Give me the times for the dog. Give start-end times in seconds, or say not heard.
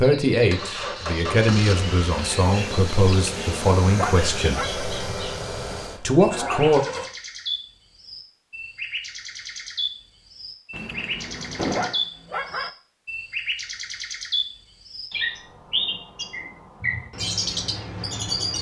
3.2-4.8, 10.7-12.7.